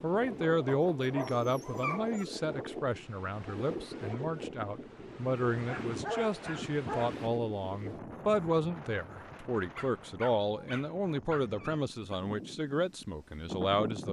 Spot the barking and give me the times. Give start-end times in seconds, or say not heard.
0.7-2.2, 5.5-7.2, 9.8-12.2.